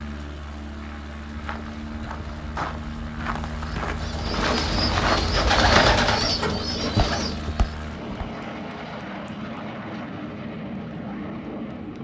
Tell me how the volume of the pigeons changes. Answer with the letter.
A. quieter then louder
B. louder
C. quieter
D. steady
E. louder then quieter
E.